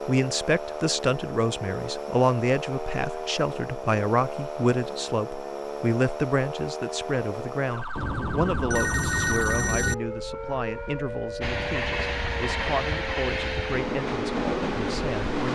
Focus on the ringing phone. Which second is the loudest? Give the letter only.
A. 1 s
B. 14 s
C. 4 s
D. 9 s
D.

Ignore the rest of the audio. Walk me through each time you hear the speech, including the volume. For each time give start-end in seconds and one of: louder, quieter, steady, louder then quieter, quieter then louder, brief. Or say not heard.
0.1-15.4 quieter.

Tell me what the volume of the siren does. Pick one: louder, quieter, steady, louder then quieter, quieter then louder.
steady.